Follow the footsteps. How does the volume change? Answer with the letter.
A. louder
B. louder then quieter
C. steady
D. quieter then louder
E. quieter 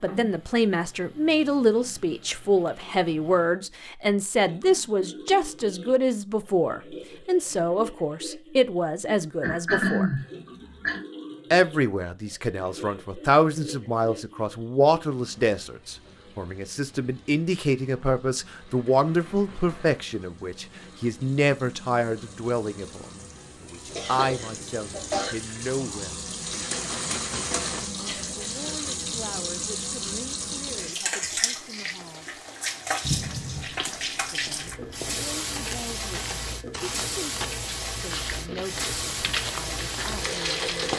A.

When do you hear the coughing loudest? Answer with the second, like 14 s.
10 s.